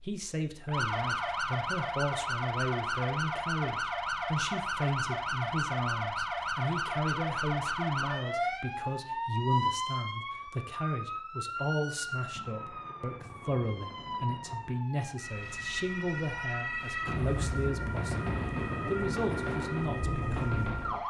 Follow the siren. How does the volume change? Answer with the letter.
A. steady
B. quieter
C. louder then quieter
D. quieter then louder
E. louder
D.